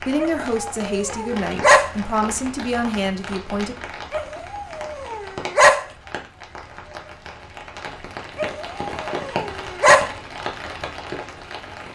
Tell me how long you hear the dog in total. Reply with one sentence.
You can hear the dog for 5 seconds altogether.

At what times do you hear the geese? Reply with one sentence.
You can't hear the geese here.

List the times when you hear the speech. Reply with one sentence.
You can hear the speech from 0.0 to 3.8 s.